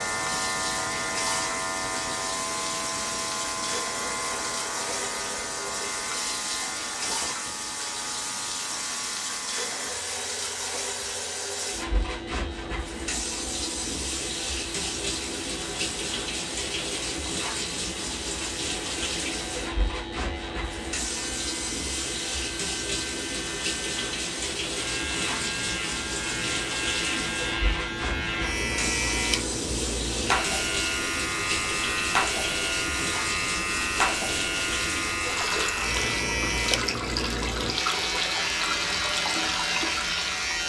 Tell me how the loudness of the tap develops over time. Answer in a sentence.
The loudness of the tap stays about the same.